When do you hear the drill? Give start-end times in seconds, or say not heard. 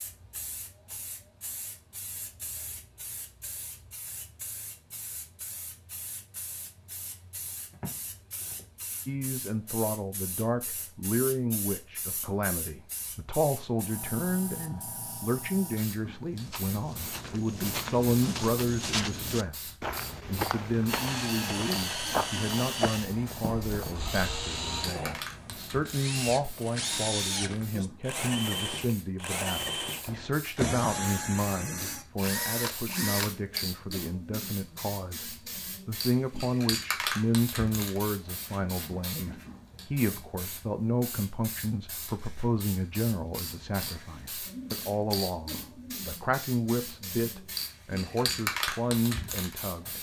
20.9-33.4.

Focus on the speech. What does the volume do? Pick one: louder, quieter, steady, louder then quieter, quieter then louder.
steady.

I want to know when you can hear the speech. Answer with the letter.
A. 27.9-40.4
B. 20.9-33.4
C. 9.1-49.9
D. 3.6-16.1
C.